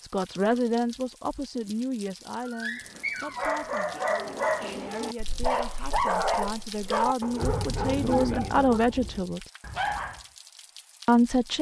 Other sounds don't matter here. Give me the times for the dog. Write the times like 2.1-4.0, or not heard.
2.4-10.2.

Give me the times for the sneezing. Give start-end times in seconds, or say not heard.
not heard.